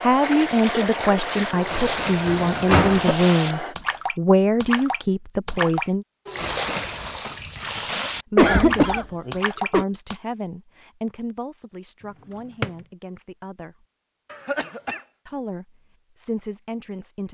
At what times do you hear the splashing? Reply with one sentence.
You can hear the splashing from 0.2 to 10.2 s.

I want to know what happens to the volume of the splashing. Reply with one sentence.
The volume of the splashing stays about the same.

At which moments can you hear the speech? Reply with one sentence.
You can hear the speech from 0.0 to 6.0 s, from 8.2 to 13.8 s and from 15.2 to 17.2 s.